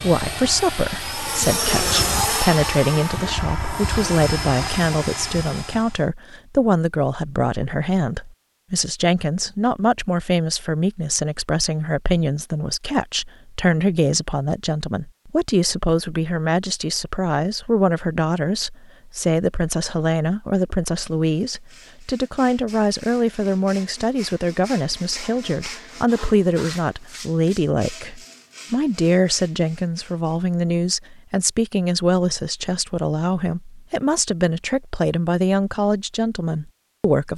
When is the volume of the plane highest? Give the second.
2 s.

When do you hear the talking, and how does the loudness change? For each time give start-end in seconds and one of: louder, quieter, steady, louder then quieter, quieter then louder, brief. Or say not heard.
0.0-37.3 steady.